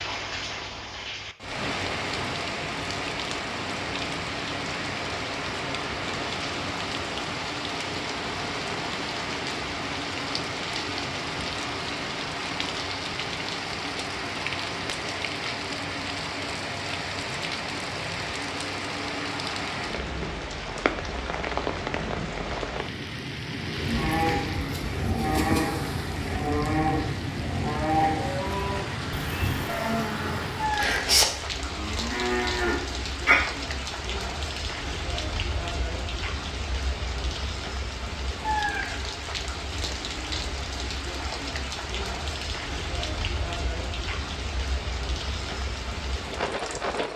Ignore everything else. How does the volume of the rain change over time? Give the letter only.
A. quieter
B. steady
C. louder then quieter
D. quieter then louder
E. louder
B.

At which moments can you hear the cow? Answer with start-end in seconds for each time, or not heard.
23.8-33.5.